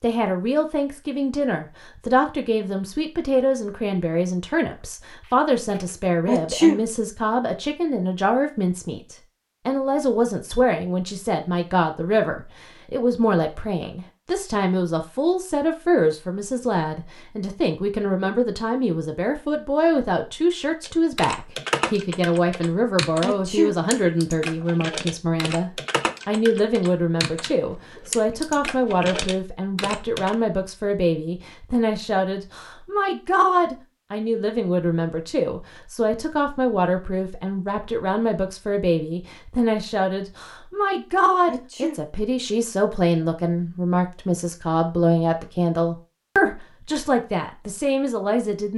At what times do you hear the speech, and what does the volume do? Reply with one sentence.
You can hear the speech from 0.0 to 48.7 s, at a steady volume.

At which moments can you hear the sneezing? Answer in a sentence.
The sneezing can be heard from 6.2 to 6.8 s, from 23.2 to 23.8 s and from 41.5 to 42.0 s.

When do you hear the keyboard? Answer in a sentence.
You can hear the keyboard from 20.8 to 30.4 s.